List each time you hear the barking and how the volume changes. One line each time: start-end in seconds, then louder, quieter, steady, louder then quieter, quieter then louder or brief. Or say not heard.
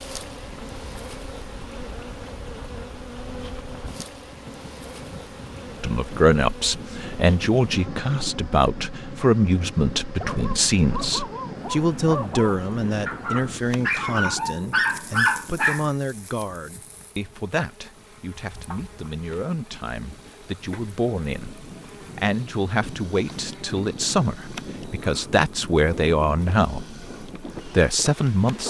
10.0-15.8 louder.